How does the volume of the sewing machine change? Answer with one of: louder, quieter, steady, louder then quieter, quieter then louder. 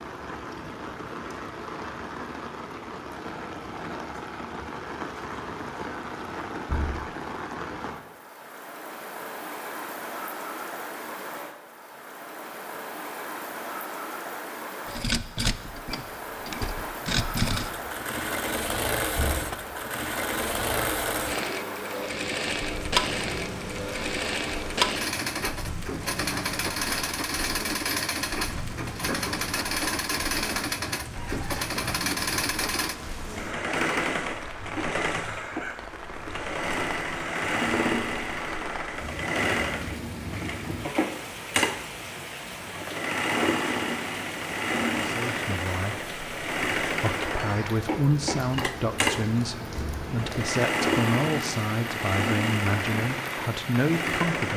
steady.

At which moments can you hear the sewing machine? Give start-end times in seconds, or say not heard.
14.8-54.5.